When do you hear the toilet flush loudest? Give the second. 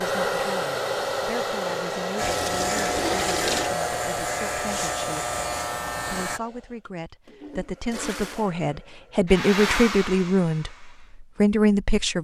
3 s.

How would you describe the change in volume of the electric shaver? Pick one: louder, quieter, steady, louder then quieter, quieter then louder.
steady.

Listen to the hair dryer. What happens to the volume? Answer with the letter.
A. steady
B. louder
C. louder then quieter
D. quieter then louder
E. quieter
D.